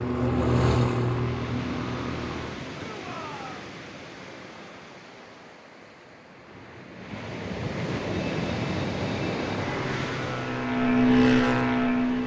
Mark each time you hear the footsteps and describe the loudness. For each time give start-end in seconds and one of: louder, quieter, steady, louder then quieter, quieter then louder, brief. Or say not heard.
not heard.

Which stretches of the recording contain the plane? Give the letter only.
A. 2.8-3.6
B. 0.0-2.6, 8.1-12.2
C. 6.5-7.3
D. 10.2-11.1
B.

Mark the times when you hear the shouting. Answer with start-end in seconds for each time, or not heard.
2.8-3.6.